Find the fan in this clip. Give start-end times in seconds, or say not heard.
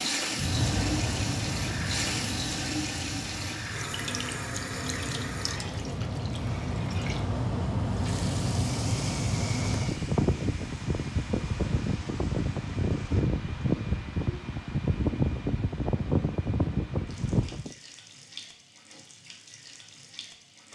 0.1-17.8.